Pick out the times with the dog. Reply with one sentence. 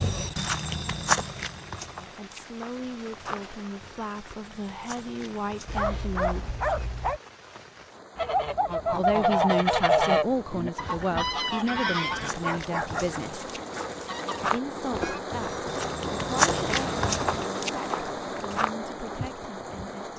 The dog can be heard from 5.7 to 7.2 s and from 12.4 to 14.4 s.